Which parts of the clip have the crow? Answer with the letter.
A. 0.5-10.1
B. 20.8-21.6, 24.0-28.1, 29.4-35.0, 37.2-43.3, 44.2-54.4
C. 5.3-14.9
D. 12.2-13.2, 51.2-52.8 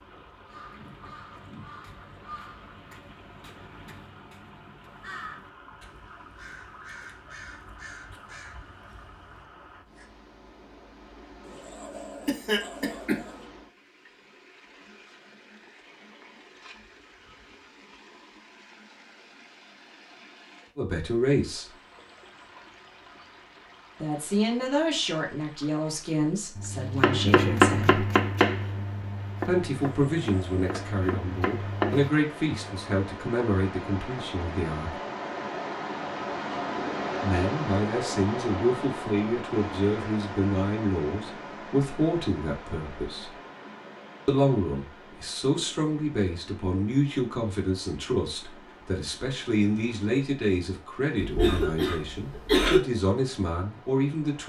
A.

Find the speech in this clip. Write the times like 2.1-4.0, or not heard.
20.8-21.6, 24.0-28.1, 29.4-35.0, 37.2-43.3, 44.2-54.4.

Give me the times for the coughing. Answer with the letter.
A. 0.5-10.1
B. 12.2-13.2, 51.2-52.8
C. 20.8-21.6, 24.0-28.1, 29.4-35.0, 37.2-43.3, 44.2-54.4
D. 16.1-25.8
B.